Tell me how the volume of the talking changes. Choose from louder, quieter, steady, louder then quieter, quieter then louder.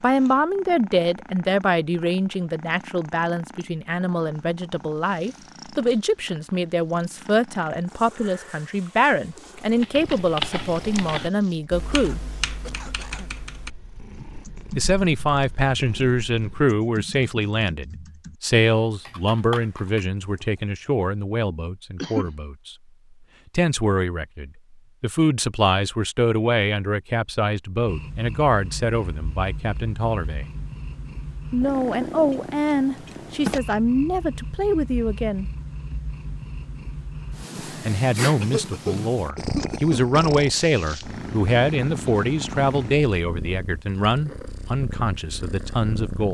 steady.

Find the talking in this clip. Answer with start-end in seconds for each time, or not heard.
0.0-12.2, 14.8-22.8, 23.6-30.5, 31.5-35.5, 37.6-46.2.